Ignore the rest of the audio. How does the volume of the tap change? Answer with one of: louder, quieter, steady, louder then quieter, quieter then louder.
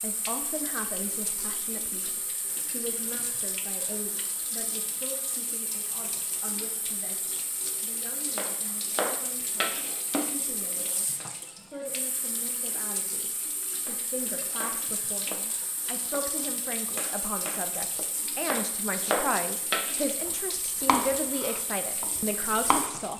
steady.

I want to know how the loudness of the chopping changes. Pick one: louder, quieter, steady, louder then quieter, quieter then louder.
quieter then louder.